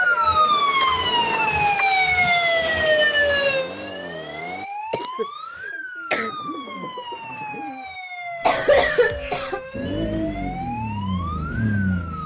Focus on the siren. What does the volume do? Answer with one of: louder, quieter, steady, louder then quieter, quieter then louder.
quieter.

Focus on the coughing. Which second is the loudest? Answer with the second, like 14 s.
9 s.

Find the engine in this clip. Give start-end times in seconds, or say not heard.
0.0-4.7, 9.7-12.2.